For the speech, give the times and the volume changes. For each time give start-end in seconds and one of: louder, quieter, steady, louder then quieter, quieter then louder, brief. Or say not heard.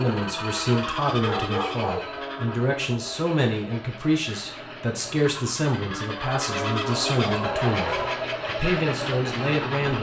0.0-9.9 steady.